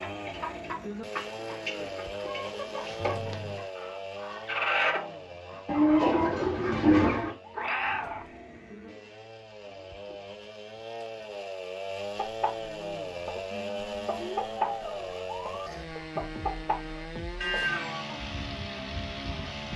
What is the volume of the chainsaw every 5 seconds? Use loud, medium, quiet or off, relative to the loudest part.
loud, medium, loud, loud.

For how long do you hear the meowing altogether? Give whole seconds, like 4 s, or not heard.
2 s.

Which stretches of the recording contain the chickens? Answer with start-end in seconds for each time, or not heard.
0.0-7.3, 12.1-19.7.